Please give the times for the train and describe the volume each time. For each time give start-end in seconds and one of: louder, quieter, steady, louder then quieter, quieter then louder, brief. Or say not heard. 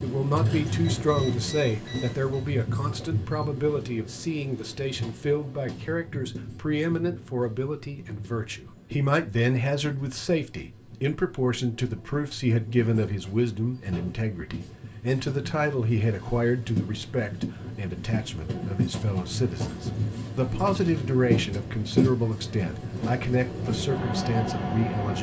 0.0-25.1 quieter then louder.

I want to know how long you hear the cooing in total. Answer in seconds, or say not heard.
not heard.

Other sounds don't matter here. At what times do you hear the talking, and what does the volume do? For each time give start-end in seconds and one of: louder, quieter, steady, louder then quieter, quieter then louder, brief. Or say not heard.
0.0-25.1 steady.